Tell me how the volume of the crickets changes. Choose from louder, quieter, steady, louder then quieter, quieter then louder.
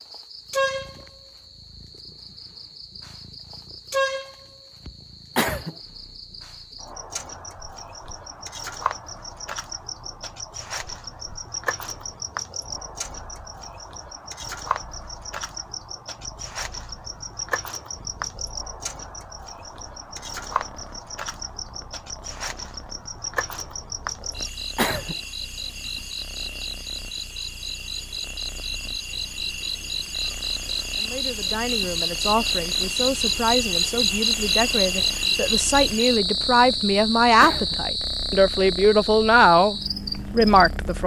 louder.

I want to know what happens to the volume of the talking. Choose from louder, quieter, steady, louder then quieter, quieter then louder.
louder.